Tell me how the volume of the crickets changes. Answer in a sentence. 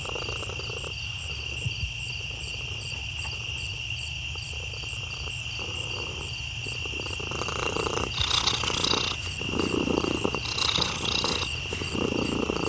The volume of the crickets stays about the same.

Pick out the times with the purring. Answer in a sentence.
You can hear the purring from 0.0 to 12.6 s.